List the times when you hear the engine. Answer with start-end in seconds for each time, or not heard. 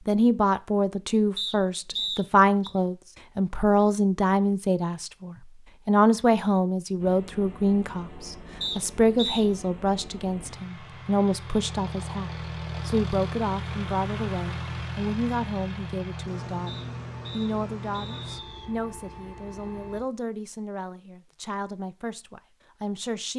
7.0-20.0.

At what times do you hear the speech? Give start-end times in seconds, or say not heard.
0.1-23.3.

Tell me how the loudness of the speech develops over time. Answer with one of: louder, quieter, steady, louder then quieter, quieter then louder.
quieter.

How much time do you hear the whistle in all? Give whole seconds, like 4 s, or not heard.
4 s.